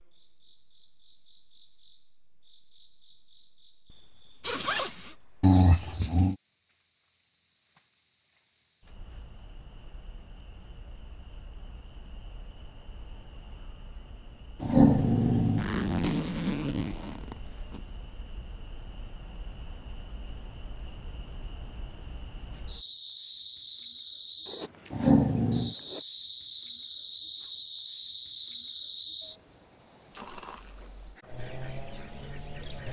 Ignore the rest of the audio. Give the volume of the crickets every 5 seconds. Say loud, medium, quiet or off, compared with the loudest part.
quiet, quiet, quiet, quiet, medium, loud, loud.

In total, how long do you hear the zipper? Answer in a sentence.
You can hear the zipper for 5 seconds altogether.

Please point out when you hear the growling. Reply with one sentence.
The growling can be heard from 5.4 to 6.3 s, from 14.6 to 15.7 s and from 24.9 to 25.8 s.